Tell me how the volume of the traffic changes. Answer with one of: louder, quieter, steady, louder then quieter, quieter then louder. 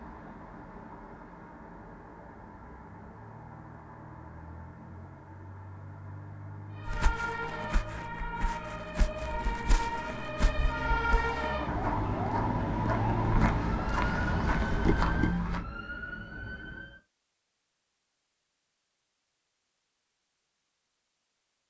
louder.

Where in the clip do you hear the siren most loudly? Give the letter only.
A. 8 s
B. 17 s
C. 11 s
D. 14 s
C.